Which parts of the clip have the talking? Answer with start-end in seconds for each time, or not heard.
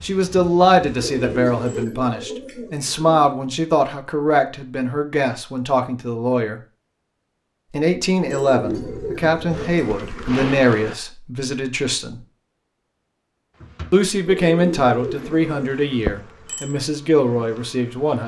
0.0-6.6, 7.7-12.2, 13.9-18.2.